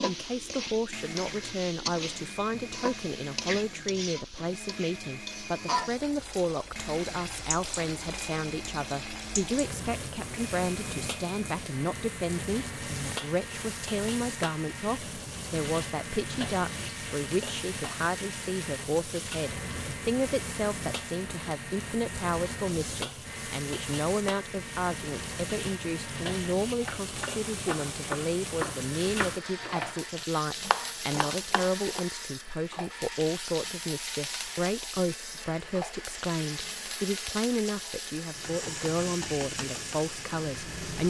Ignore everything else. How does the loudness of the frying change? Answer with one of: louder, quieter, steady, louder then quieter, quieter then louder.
steady.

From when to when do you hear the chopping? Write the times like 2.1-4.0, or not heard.
26.8-32.0.